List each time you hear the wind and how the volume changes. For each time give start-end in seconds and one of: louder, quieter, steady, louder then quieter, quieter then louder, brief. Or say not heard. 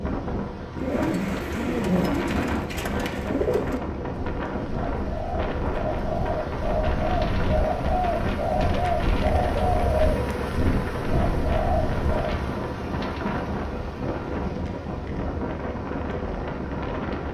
0.0-17.2 steady.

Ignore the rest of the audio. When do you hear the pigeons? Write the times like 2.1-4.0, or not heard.
0.8-12.3.